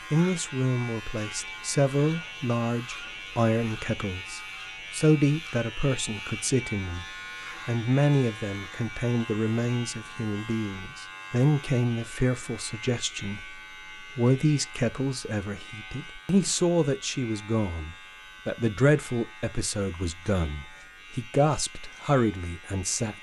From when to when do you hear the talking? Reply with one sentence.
You can hear the talking from 0.1 to 7.0 s and from 7.7 to 23.1 s.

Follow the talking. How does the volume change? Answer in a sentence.
The loudness of the talking stays about the same.